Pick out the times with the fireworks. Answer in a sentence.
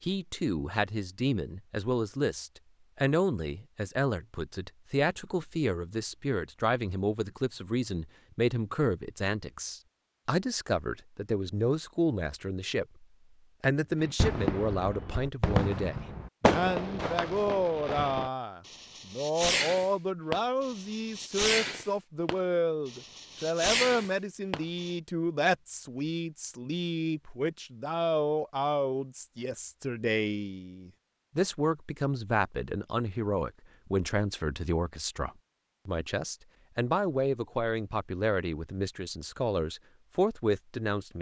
You can hear the fireworks from 14.0 to 24.9 s.